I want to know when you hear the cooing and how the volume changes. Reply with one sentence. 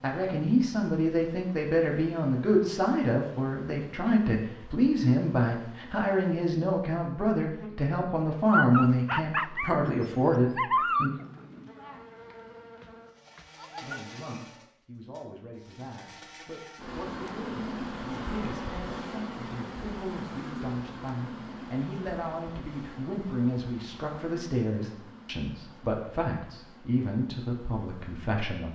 You can't hear the cooing here.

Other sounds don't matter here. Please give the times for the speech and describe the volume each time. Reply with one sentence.
The speech can be heard from 0.0 to 11.1 s, at a steady volume; and from 13.8 to 28.7 s, getting louder.